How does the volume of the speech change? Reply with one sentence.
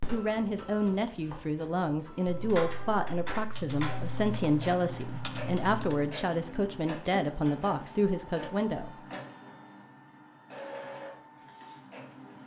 The volume of the speech stays about the same.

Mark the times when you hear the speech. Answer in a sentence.
You can hear the speech from 0.0 to 9.2 s.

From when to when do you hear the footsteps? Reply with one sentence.
The footsteps can't be heard in this clip.